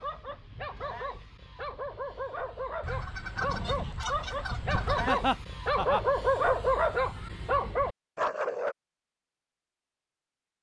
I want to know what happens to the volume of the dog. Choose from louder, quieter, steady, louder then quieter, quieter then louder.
louder.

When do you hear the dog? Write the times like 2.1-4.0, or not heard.
0.0-8.8.